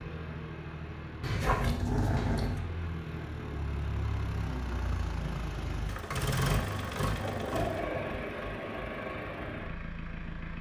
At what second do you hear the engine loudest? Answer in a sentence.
The volume of the engine peaks at 7 seconds.